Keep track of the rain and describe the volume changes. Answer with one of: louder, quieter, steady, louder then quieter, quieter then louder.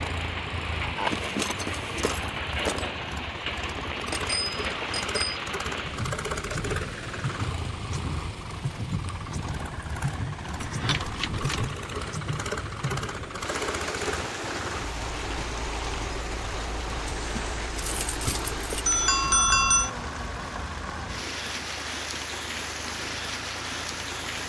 steady.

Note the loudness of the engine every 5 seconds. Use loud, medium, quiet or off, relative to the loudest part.
loud, loud, loud, medium, medium.